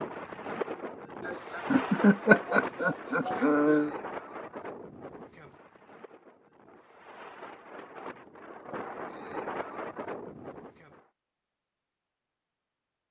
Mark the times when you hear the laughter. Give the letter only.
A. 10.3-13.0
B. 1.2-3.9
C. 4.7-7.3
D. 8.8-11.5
B.